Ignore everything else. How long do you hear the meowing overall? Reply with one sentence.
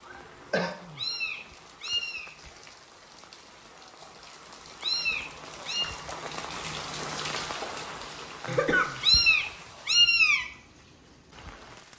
The meowing can be heard for 4 seconds in total.